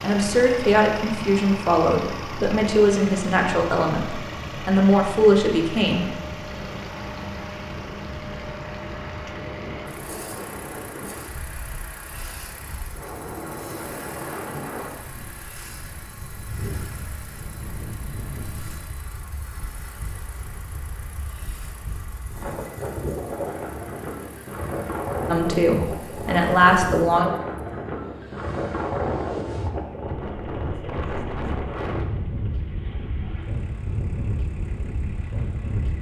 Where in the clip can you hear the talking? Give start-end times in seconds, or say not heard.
0.0-6.1, 25.2-27.2.